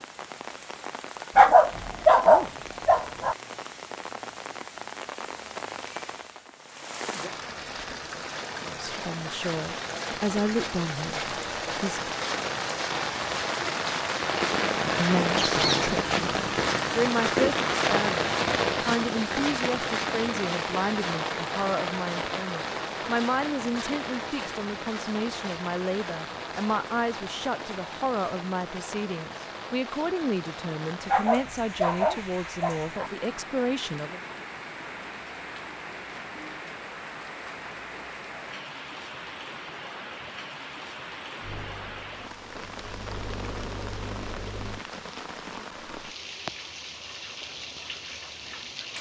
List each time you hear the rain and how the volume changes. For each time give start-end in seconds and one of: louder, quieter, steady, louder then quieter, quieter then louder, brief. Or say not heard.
0.0-48.9 louder then quieter.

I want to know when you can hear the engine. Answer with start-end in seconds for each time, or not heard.
41.4-44.9.